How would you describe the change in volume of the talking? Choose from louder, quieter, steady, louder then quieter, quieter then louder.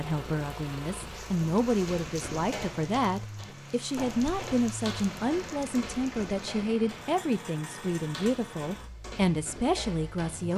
steady.